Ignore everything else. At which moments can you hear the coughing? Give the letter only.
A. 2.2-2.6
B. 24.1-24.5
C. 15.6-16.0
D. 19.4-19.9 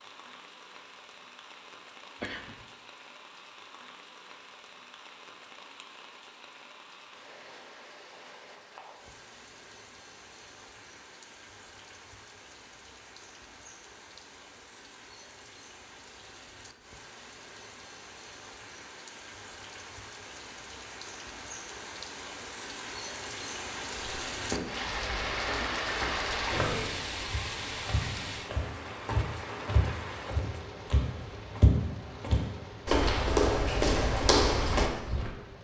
A.